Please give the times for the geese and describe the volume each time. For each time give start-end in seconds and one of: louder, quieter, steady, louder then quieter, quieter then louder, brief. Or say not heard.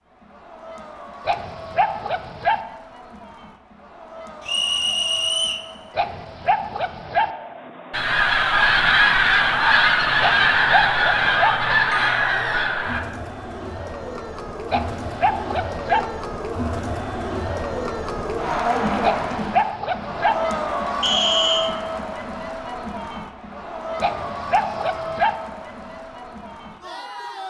7.9-13.0 steady.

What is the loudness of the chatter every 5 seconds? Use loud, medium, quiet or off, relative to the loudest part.
quiet, quiet, medium, loud, loud, medium.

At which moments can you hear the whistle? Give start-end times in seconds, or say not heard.
4.5-5.7, 11.9-12.7, 21.0-21.8.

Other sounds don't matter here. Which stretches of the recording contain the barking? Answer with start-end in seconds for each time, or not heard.
1.2-2.6, 6.0-7.3, 10.2-11.6, 14.7-16.1, 19.0-20.4, 24.0-25.4.